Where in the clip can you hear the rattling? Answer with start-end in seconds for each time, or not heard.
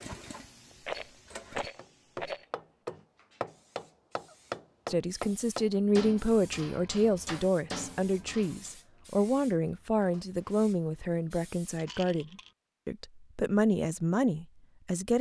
0.8-2.5, 11.8-12.5.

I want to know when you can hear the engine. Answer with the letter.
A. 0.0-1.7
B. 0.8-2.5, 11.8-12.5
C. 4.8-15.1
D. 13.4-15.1
A.